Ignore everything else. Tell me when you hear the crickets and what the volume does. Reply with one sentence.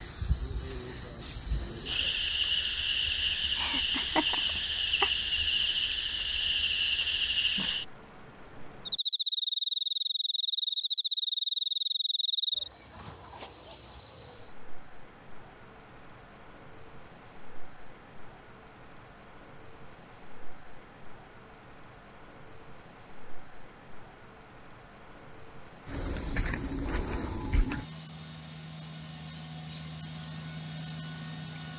The crickets can be heard from 0.0 to 31.7 s, getting quieter then louder.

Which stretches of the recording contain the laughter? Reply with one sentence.
You can hear the laughter from 3.5 to 5.1 s.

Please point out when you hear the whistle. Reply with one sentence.
The whistle can't be heard in this clip.